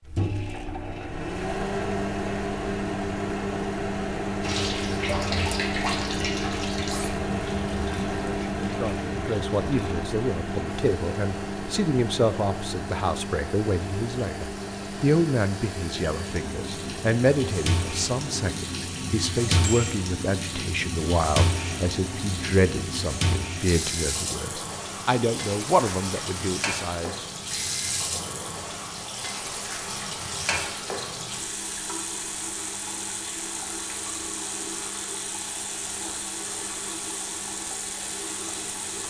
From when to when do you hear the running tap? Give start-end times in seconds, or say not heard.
4.4-39.0.